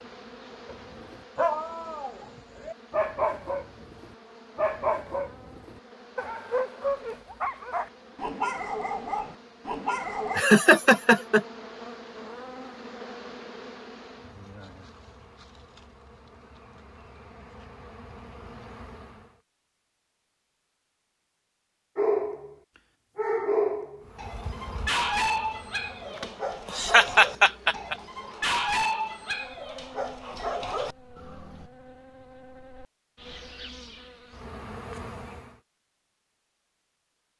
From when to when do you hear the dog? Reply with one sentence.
The dog can be heard from 0.7 to 10.4 s, from 21.9 to 22.6 s and from 23.1 to 31.6 s.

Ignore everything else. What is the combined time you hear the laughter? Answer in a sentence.
The laughter can be heard for 2 seconds in total.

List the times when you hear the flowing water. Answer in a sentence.
The flowing water can't be heard in this clip.